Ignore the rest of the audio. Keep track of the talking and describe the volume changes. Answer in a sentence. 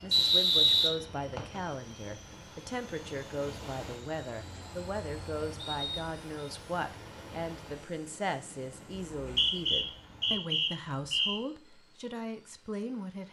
The volume of the talking stays about the same.